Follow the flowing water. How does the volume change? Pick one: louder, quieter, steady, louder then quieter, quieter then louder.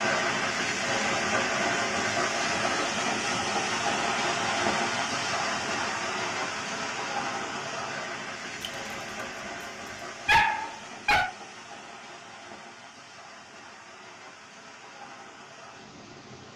quieter.